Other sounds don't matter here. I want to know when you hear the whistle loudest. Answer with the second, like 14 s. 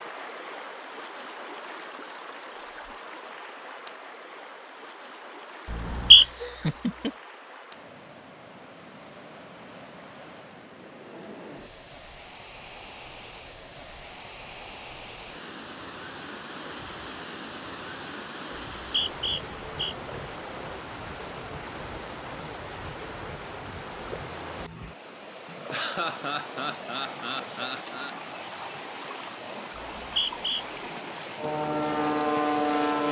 6 s.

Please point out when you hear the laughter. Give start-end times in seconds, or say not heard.
6.1-7.2, 25.7-28.1.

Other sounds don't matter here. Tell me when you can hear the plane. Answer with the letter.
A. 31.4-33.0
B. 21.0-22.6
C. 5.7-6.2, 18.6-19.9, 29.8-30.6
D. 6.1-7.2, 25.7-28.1
A.